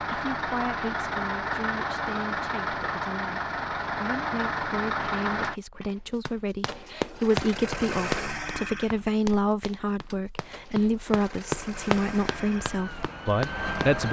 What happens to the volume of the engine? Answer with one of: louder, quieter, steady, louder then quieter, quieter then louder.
quieter.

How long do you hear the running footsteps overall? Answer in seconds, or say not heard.
8 s.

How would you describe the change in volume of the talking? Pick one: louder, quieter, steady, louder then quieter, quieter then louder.
louder.